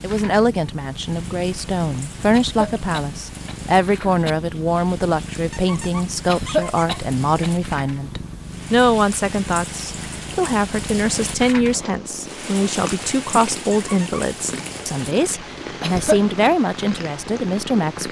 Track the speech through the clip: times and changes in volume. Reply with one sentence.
The speech can be heard from 0.0 to 18.0 s, at a steady volume.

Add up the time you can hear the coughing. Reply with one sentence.
You can hear the coughing for 4 seconds altogether.